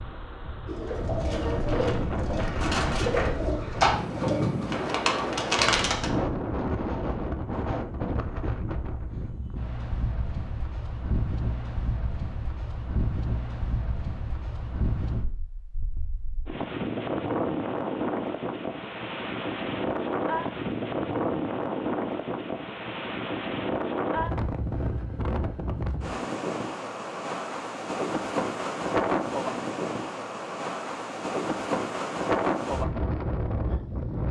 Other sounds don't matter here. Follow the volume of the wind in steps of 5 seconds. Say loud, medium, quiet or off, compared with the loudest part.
loud, loud, medium, loud, loud, loud, loud.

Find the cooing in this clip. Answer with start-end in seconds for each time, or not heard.
0.7-6.1.